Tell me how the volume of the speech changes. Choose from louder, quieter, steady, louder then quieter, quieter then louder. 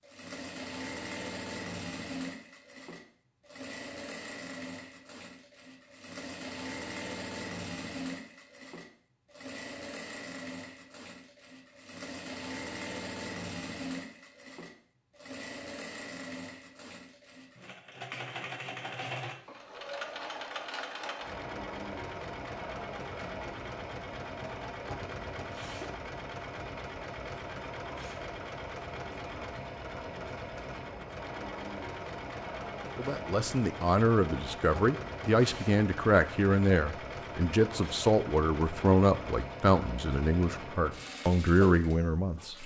steady.